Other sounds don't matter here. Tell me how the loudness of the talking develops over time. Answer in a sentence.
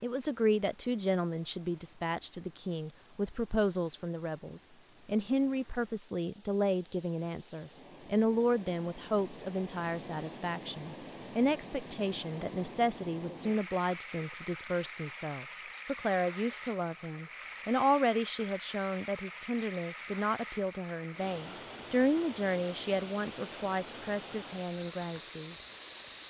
The volume of the talking stays about the same.